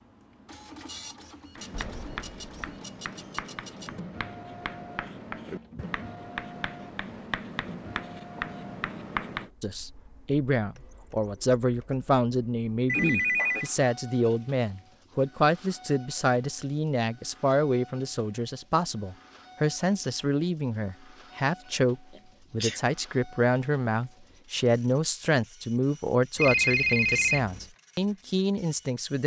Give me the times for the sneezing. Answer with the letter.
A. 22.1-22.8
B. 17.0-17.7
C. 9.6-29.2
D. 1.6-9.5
A.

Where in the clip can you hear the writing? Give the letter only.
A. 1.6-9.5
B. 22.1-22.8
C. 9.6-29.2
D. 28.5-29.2
A.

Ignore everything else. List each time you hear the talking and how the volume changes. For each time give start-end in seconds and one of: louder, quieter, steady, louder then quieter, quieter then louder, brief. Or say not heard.
9.6-29.2 steady.